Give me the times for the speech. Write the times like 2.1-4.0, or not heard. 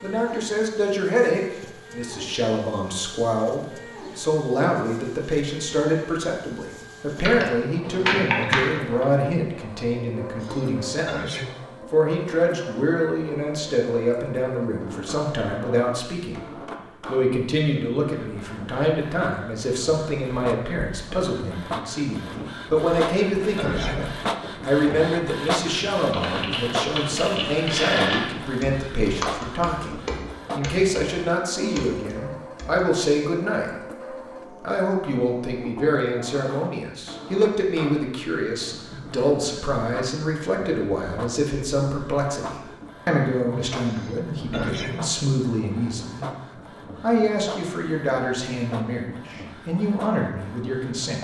0.0-16.4, 17.1-46.4, 47.0-51.1.